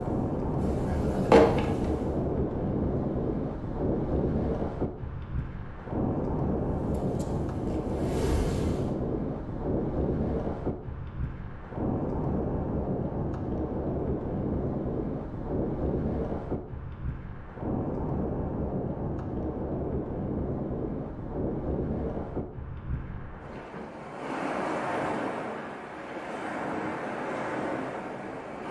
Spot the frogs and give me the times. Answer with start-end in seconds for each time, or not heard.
not heard.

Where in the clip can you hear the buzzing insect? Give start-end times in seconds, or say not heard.
0.0-2.1, 6.5-8.9.